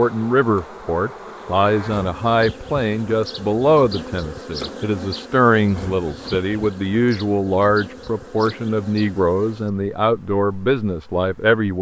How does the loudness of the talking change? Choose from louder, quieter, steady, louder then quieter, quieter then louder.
steady.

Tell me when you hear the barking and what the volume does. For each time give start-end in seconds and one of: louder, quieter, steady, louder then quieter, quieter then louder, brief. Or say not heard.
not heard.